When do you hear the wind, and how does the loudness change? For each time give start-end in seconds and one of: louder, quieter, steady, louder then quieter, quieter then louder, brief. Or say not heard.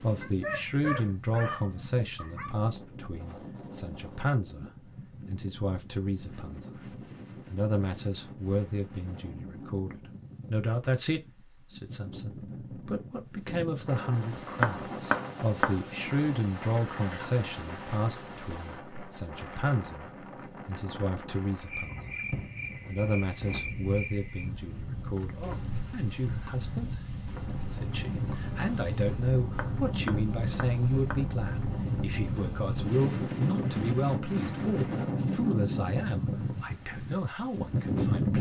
0.0-38.3 louder.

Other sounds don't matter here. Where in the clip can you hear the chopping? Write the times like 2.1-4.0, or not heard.
14.6-15.8, 29.5-31.2.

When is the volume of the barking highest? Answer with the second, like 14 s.
1 s.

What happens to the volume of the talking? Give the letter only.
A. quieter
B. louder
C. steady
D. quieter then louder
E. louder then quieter
C.